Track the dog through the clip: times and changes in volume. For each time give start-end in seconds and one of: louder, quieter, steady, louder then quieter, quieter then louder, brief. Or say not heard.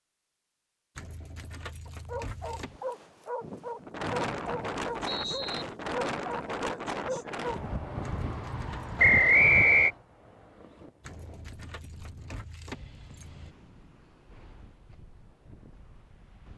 1.9-7.6 steady.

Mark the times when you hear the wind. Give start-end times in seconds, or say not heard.
2.5-16.5.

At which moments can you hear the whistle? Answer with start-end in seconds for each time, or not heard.
4.0-5.7, 8.9-9.9.